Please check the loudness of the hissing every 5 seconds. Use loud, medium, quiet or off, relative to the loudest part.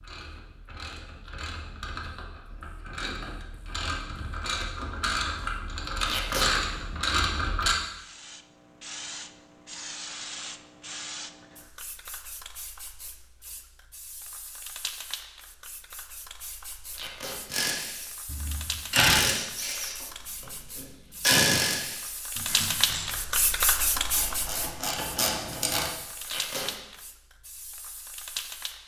off, medium, medium, medium, loud, medium.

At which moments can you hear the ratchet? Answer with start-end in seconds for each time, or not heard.
0.0-7.8, 17.5-25.9.